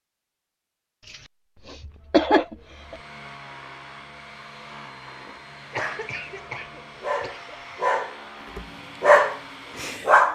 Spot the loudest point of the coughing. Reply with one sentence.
The loudest moment of the coughing is at 2 seconds.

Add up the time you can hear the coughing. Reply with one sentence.
The coughing can be heard for 4 seconds in total.